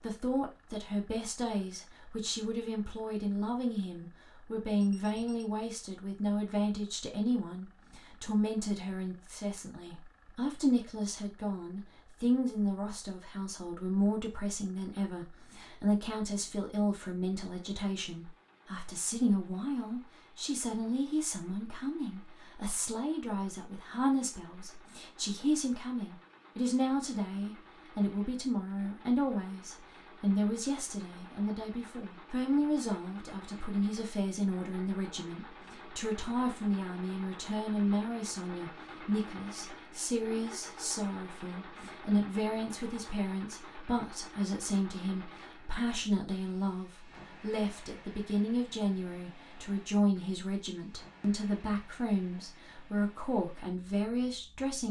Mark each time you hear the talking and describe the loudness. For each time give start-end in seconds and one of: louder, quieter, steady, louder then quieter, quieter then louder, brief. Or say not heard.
0.0-54.8 steady.